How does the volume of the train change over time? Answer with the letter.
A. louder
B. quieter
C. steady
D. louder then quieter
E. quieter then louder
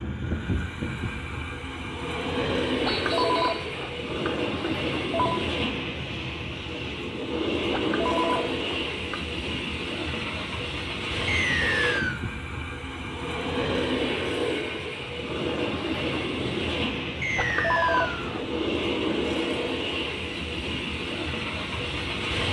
C.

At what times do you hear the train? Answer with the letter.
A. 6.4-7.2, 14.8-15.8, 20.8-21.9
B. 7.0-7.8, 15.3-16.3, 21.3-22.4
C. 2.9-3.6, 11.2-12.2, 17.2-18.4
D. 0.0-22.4
D.